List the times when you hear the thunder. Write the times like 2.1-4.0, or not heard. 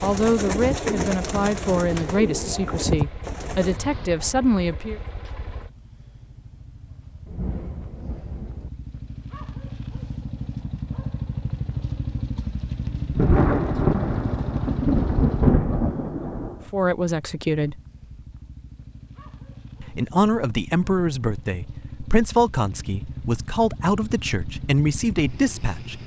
7.2-8.7, 13.2-16.6.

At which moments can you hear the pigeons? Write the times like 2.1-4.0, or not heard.
0.0-3.8.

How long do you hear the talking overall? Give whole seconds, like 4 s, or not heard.
12 s.